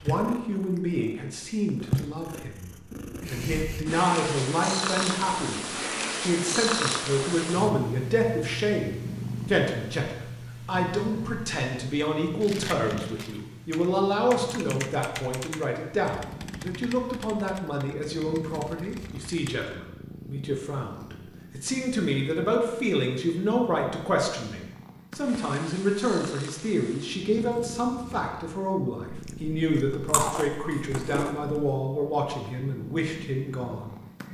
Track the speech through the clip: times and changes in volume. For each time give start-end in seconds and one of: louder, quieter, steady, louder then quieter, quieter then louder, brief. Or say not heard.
0.0-34.0 steady.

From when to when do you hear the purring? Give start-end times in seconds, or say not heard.
0.0-34.2.